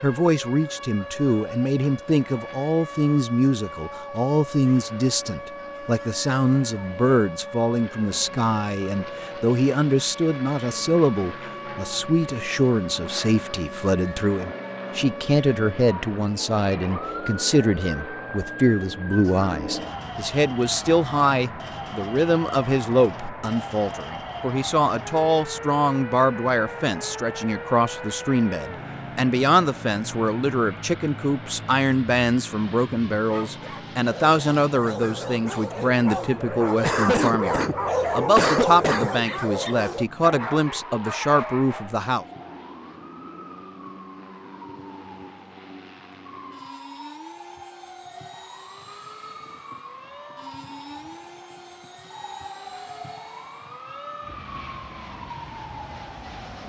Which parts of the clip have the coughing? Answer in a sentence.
You can hear the coughing from 36.8 to 39.1 s.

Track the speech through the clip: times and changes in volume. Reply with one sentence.
You can hear the speech from 0.0 to 42.2 s, at a steady volume.